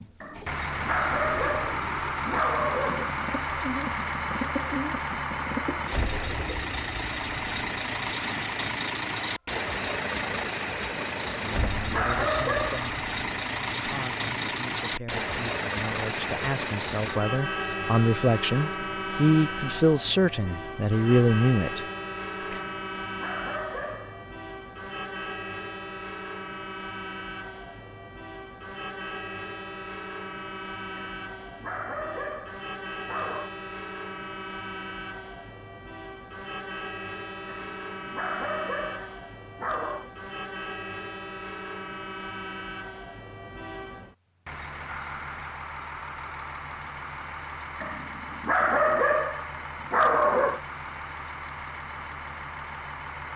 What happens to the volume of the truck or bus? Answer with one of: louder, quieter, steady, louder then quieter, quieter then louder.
quieter.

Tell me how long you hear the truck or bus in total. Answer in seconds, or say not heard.
53 s.